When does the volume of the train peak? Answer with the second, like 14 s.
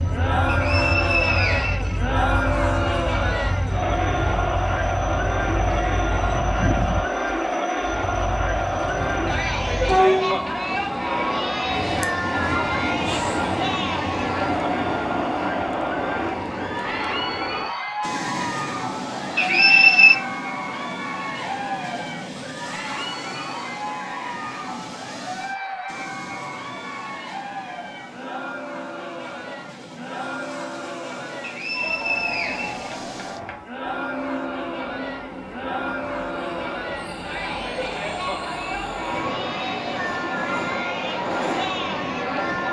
10 s.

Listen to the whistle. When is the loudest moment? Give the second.
20 s.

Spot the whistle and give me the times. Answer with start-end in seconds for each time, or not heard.
0.5-2.0, 19.4-20.2, 31.4-33.4.